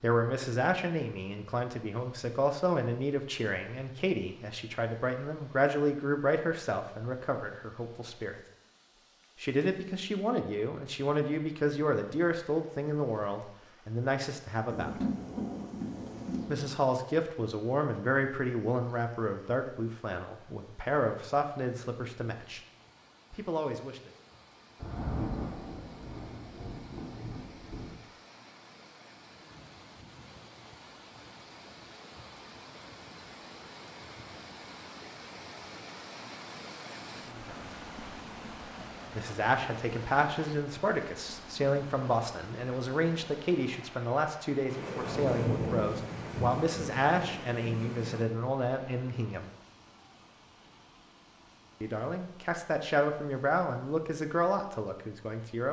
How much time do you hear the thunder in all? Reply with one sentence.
You can hear the thunder for 9 seconds altogether.